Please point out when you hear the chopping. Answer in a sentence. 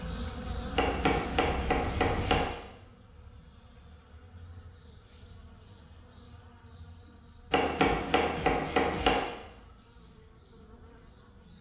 You can hear the chopping from 0.8 to 2.5 s and from 7.5 to 9.2 s.